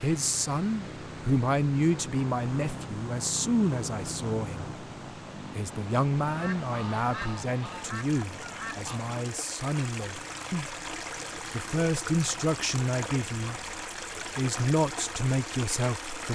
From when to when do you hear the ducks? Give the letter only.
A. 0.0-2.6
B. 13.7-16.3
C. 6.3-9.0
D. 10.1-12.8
C.